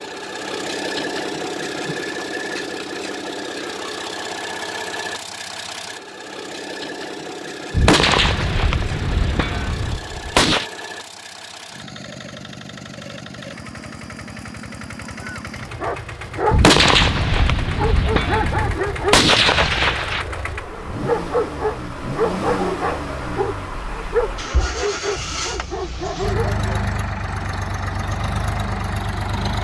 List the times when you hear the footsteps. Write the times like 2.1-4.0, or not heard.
not heard.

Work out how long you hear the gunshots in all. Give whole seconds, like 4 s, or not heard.
7 s.